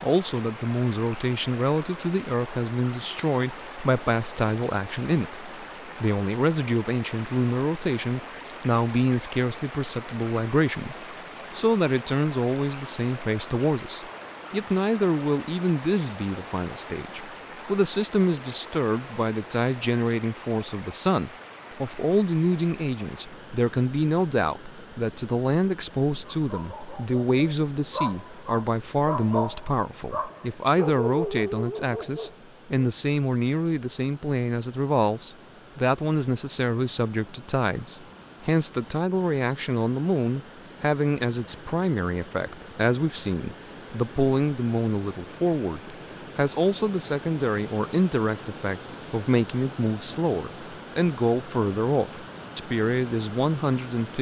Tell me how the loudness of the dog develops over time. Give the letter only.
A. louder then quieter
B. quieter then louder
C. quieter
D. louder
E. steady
D.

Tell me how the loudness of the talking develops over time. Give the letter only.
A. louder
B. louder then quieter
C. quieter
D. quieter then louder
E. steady
E.